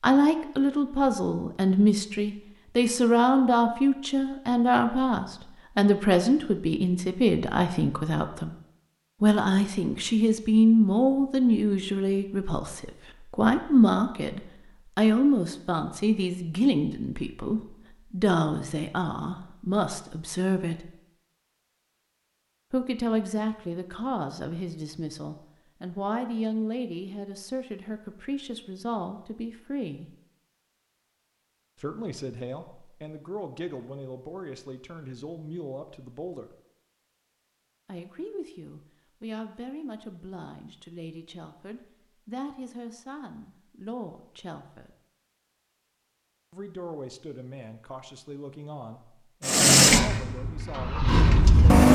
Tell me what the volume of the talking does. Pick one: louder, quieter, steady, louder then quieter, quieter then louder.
quieter.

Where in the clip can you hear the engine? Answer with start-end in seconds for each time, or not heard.
49.5-51.9.